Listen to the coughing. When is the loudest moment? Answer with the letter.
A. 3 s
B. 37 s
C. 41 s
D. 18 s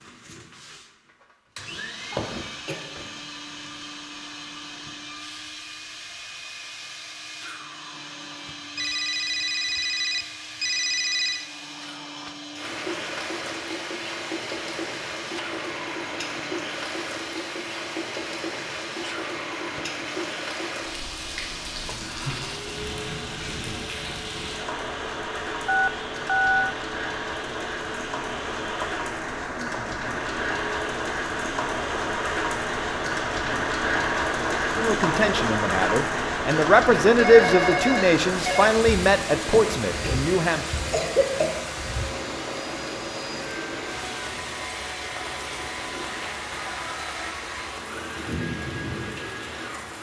C.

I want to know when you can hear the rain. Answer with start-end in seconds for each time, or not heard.
12.6-49.9.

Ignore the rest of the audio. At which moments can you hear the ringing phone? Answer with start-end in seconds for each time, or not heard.
8.8-11.4, 25.6-26.8, 37.1-38.7.